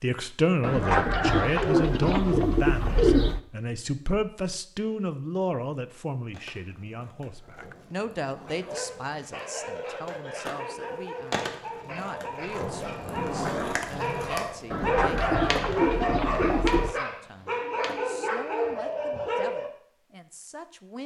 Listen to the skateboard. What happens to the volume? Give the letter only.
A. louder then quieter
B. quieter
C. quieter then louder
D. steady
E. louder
E.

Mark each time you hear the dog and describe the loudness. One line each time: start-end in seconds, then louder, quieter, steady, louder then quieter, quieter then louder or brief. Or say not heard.
8.5-19.7 louder.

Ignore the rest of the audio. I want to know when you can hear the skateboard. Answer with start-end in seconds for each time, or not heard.
6.3-18.1.